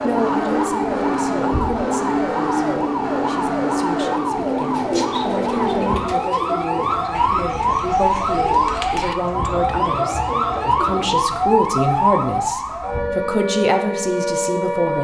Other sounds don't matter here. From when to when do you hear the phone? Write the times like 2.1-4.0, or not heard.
not heard.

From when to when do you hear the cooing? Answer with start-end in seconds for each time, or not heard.
4.6-11.6.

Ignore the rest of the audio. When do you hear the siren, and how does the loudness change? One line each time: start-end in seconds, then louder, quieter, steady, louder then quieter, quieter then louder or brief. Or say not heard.
0.0-14.9 steady.